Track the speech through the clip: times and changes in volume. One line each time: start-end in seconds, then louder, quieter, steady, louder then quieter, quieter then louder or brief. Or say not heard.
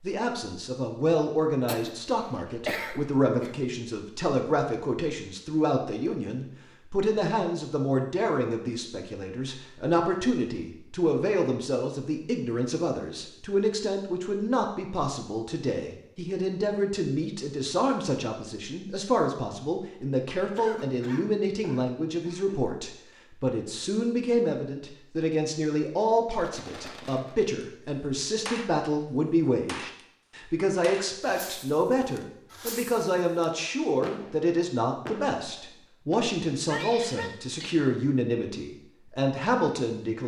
0.0-40.2 steady.